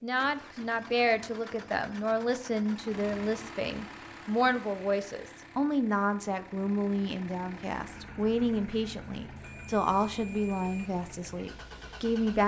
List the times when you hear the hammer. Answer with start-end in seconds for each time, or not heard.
not heard.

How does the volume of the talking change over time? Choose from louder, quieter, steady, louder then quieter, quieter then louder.
steady.